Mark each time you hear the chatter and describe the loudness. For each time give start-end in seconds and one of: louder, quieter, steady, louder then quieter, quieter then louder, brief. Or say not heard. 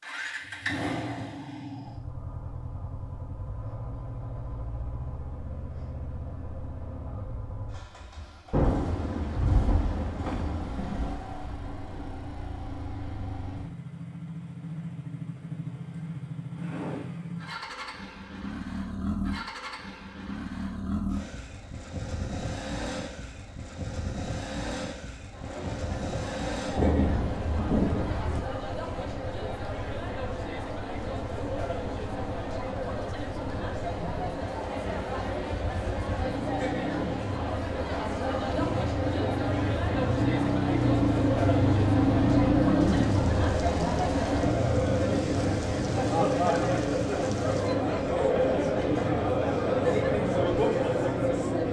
25.3-51.6 louder.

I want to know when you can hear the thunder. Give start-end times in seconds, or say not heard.
8.5-11.2, 26.8-28.4, 42.8-47.8.